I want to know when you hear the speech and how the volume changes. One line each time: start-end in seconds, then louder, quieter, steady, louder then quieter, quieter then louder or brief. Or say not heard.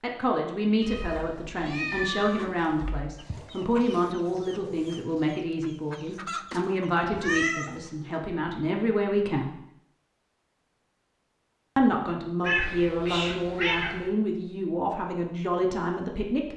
0.0-9.6 steady
11.8-16.5 steady.